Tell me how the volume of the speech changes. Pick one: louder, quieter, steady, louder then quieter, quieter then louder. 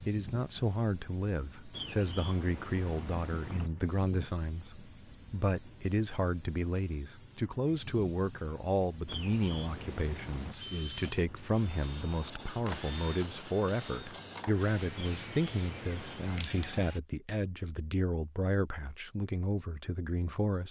steady.